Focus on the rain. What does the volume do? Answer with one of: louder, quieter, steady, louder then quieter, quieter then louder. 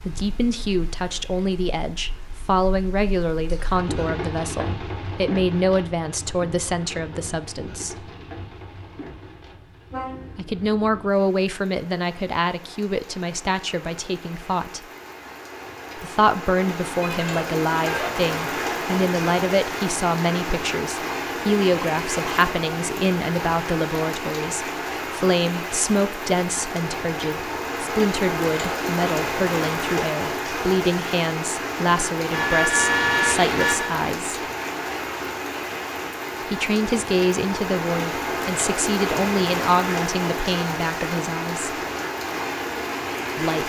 louder.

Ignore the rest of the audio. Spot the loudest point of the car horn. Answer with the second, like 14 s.
33 s.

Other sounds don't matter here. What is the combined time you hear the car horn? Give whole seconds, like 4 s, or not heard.
4 s.